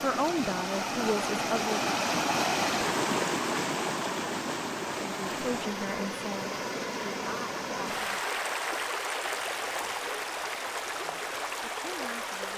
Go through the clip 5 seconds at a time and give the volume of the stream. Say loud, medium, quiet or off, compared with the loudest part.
loud, loud, medium.